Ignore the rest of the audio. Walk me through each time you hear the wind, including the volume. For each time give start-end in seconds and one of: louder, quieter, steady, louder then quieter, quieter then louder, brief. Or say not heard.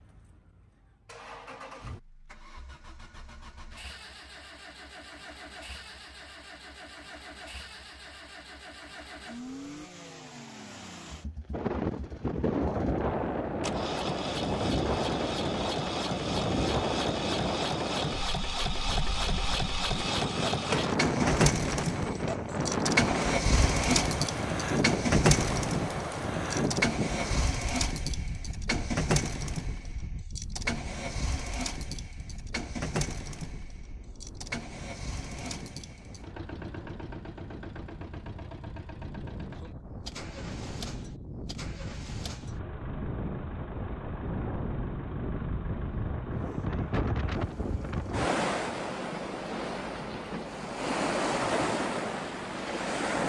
11.5-53.2 quieter then louder.